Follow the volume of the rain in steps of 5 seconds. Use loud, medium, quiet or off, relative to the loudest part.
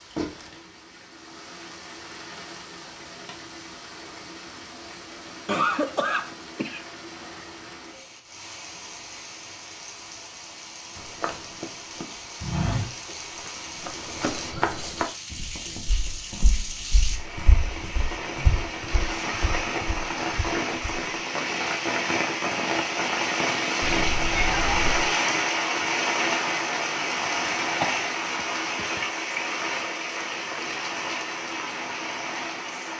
quiet, quiet, quiet, medium, loud, loud, medium.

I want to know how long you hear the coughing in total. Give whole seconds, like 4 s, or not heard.
3 s.